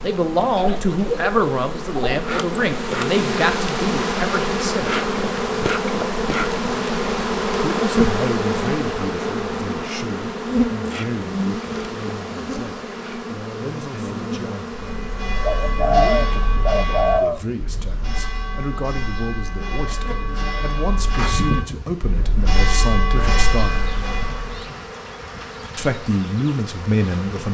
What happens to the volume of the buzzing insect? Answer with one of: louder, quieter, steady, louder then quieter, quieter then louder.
quieter.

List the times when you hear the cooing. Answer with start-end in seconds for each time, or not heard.
0.6-2.2, 15.4-17.4.